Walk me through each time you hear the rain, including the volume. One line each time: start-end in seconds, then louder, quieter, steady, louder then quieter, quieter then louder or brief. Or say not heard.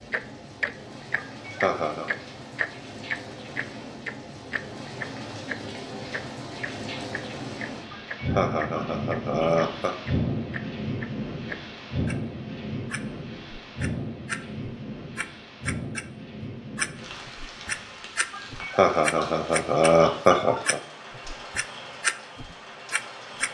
0.0-23.4 louder then quieter.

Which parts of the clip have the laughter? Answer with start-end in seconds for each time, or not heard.
1.1-2.1, 7.9-9.9, 18.3-20.8.